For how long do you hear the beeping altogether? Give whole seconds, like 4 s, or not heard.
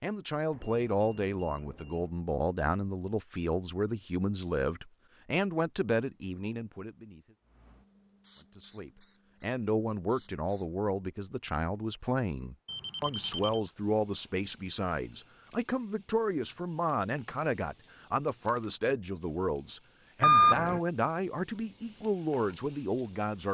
3 s.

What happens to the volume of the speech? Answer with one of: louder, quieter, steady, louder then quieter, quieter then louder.
steady.